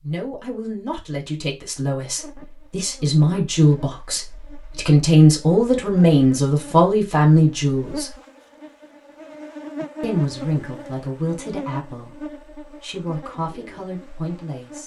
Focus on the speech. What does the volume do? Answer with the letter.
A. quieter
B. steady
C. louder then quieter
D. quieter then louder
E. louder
C.